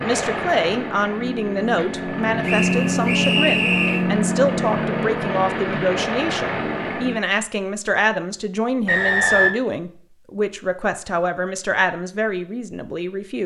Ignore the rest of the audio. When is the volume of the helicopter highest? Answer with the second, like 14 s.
3 s.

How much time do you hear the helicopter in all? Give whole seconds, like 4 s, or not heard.
7 s.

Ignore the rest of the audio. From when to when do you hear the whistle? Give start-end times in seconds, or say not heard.
2.5-4.0, 8.8-9.6.